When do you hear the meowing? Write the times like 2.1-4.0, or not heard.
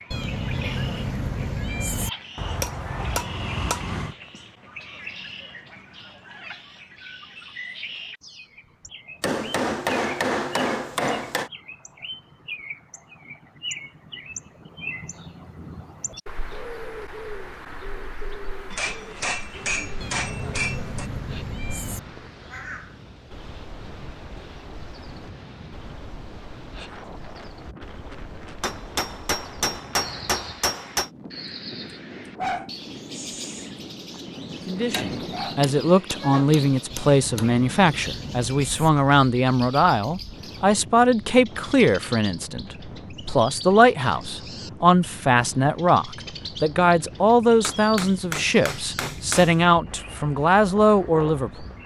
0.1-2.1, 20.0-22.0, 36.9-38.9.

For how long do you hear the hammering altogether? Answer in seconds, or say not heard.
14 s.